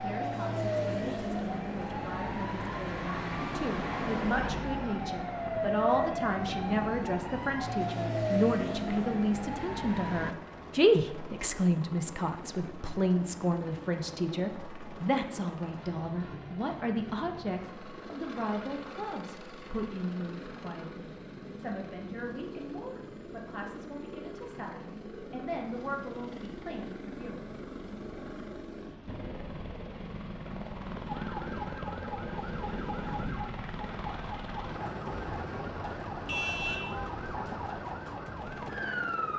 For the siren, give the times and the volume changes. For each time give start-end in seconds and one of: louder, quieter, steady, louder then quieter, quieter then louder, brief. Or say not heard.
0.0-10.3 steady
31.1-39.3 steady.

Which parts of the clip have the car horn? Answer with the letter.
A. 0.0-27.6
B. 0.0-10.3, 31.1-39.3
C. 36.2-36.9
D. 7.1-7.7
C.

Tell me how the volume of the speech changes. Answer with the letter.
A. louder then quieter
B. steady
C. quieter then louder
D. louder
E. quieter
A.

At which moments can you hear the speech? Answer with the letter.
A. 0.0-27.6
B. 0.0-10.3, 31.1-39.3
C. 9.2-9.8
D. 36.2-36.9
A.